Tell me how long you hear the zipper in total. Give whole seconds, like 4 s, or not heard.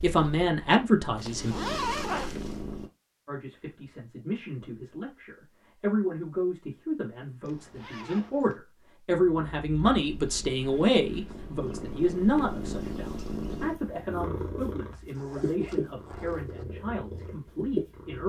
4 s.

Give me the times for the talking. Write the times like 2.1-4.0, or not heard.
0.0-1.6, 3.2-18.2.